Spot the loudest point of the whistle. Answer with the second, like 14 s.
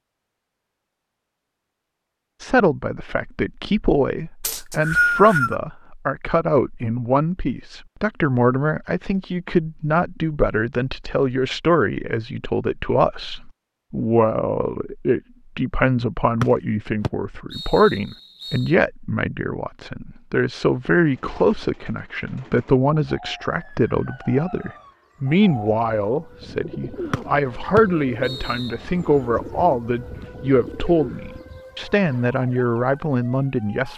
5 s.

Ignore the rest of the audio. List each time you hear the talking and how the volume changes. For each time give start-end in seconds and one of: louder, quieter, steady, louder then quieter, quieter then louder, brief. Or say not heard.
2.4-33.9 steady.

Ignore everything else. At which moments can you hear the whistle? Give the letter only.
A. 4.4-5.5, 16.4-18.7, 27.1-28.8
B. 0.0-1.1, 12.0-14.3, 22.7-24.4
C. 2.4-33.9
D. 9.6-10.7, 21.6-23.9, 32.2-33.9
A.